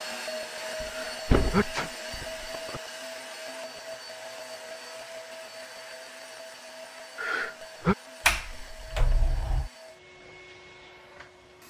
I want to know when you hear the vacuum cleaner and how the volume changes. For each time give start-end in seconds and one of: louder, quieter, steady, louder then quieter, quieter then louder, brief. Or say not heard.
0.0-11.6 quieter.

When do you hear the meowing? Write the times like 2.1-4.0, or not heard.
not heard.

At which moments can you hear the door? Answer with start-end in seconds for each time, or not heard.
0.8-2.8, 8.2-9.7.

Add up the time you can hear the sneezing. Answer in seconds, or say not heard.
2 s.